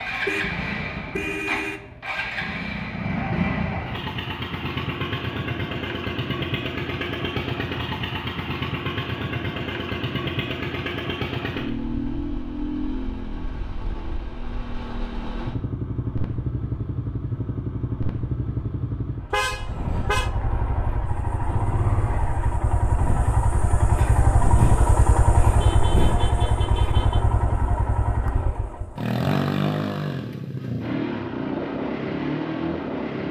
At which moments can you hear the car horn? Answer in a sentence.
You can hear the car horn from 0.2 to 1.9 s, from 19.3 to 20.3 s and from 25.4 to 27.2 s.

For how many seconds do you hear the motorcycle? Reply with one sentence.
You can hear the motorcycle for 33 seconds altogether.